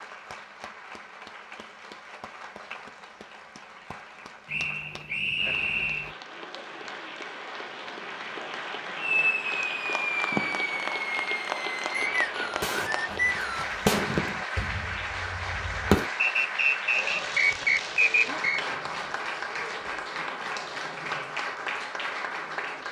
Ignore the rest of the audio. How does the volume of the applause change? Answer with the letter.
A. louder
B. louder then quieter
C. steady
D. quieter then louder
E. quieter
A.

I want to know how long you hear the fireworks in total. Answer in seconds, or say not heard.
7 s.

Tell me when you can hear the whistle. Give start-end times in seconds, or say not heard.
4.5-6.2, 11.9-13.7, 16.1-18.6.